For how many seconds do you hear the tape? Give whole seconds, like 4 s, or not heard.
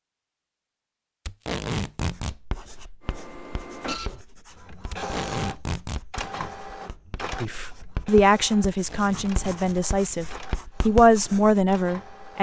3 s.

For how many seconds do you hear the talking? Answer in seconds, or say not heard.
5 s.